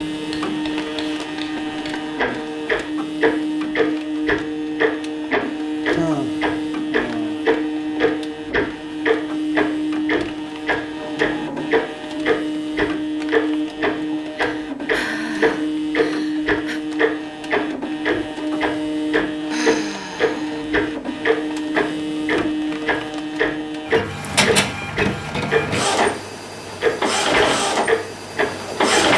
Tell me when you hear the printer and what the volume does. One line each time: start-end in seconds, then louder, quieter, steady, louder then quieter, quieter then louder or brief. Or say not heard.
0.0-29.1 steady.